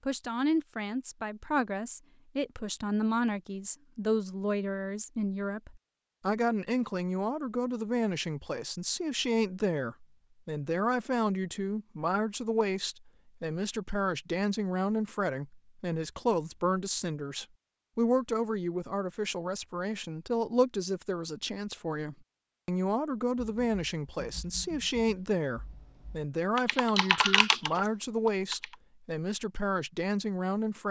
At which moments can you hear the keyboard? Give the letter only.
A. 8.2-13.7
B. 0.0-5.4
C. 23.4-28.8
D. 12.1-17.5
C.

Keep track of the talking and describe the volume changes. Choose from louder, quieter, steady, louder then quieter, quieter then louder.
steady.